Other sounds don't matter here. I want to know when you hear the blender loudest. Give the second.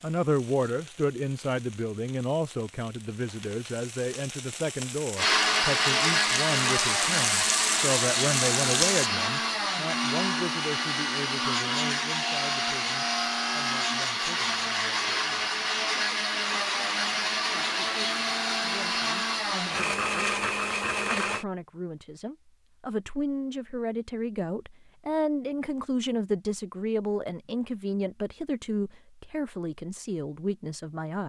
6 s.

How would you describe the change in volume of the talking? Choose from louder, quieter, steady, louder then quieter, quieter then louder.
quieter then louder.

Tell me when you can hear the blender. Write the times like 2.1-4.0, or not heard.
5.2-21.4.